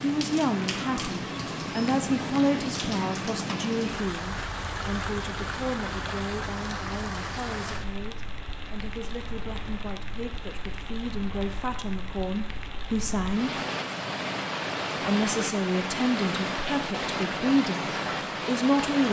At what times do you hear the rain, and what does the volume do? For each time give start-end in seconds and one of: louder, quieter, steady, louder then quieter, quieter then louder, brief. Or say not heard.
0.0-19.0 quieter then louder.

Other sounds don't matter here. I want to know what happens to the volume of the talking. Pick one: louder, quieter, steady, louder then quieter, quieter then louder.
quieter then louder.